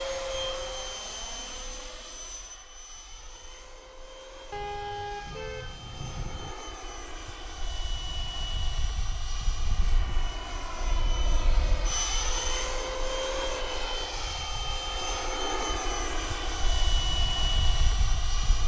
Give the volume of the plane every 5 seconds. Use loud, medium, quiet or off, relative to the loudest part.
medium, medium, loud, loud.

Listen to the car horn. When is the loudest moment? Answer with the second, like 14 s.
5 s.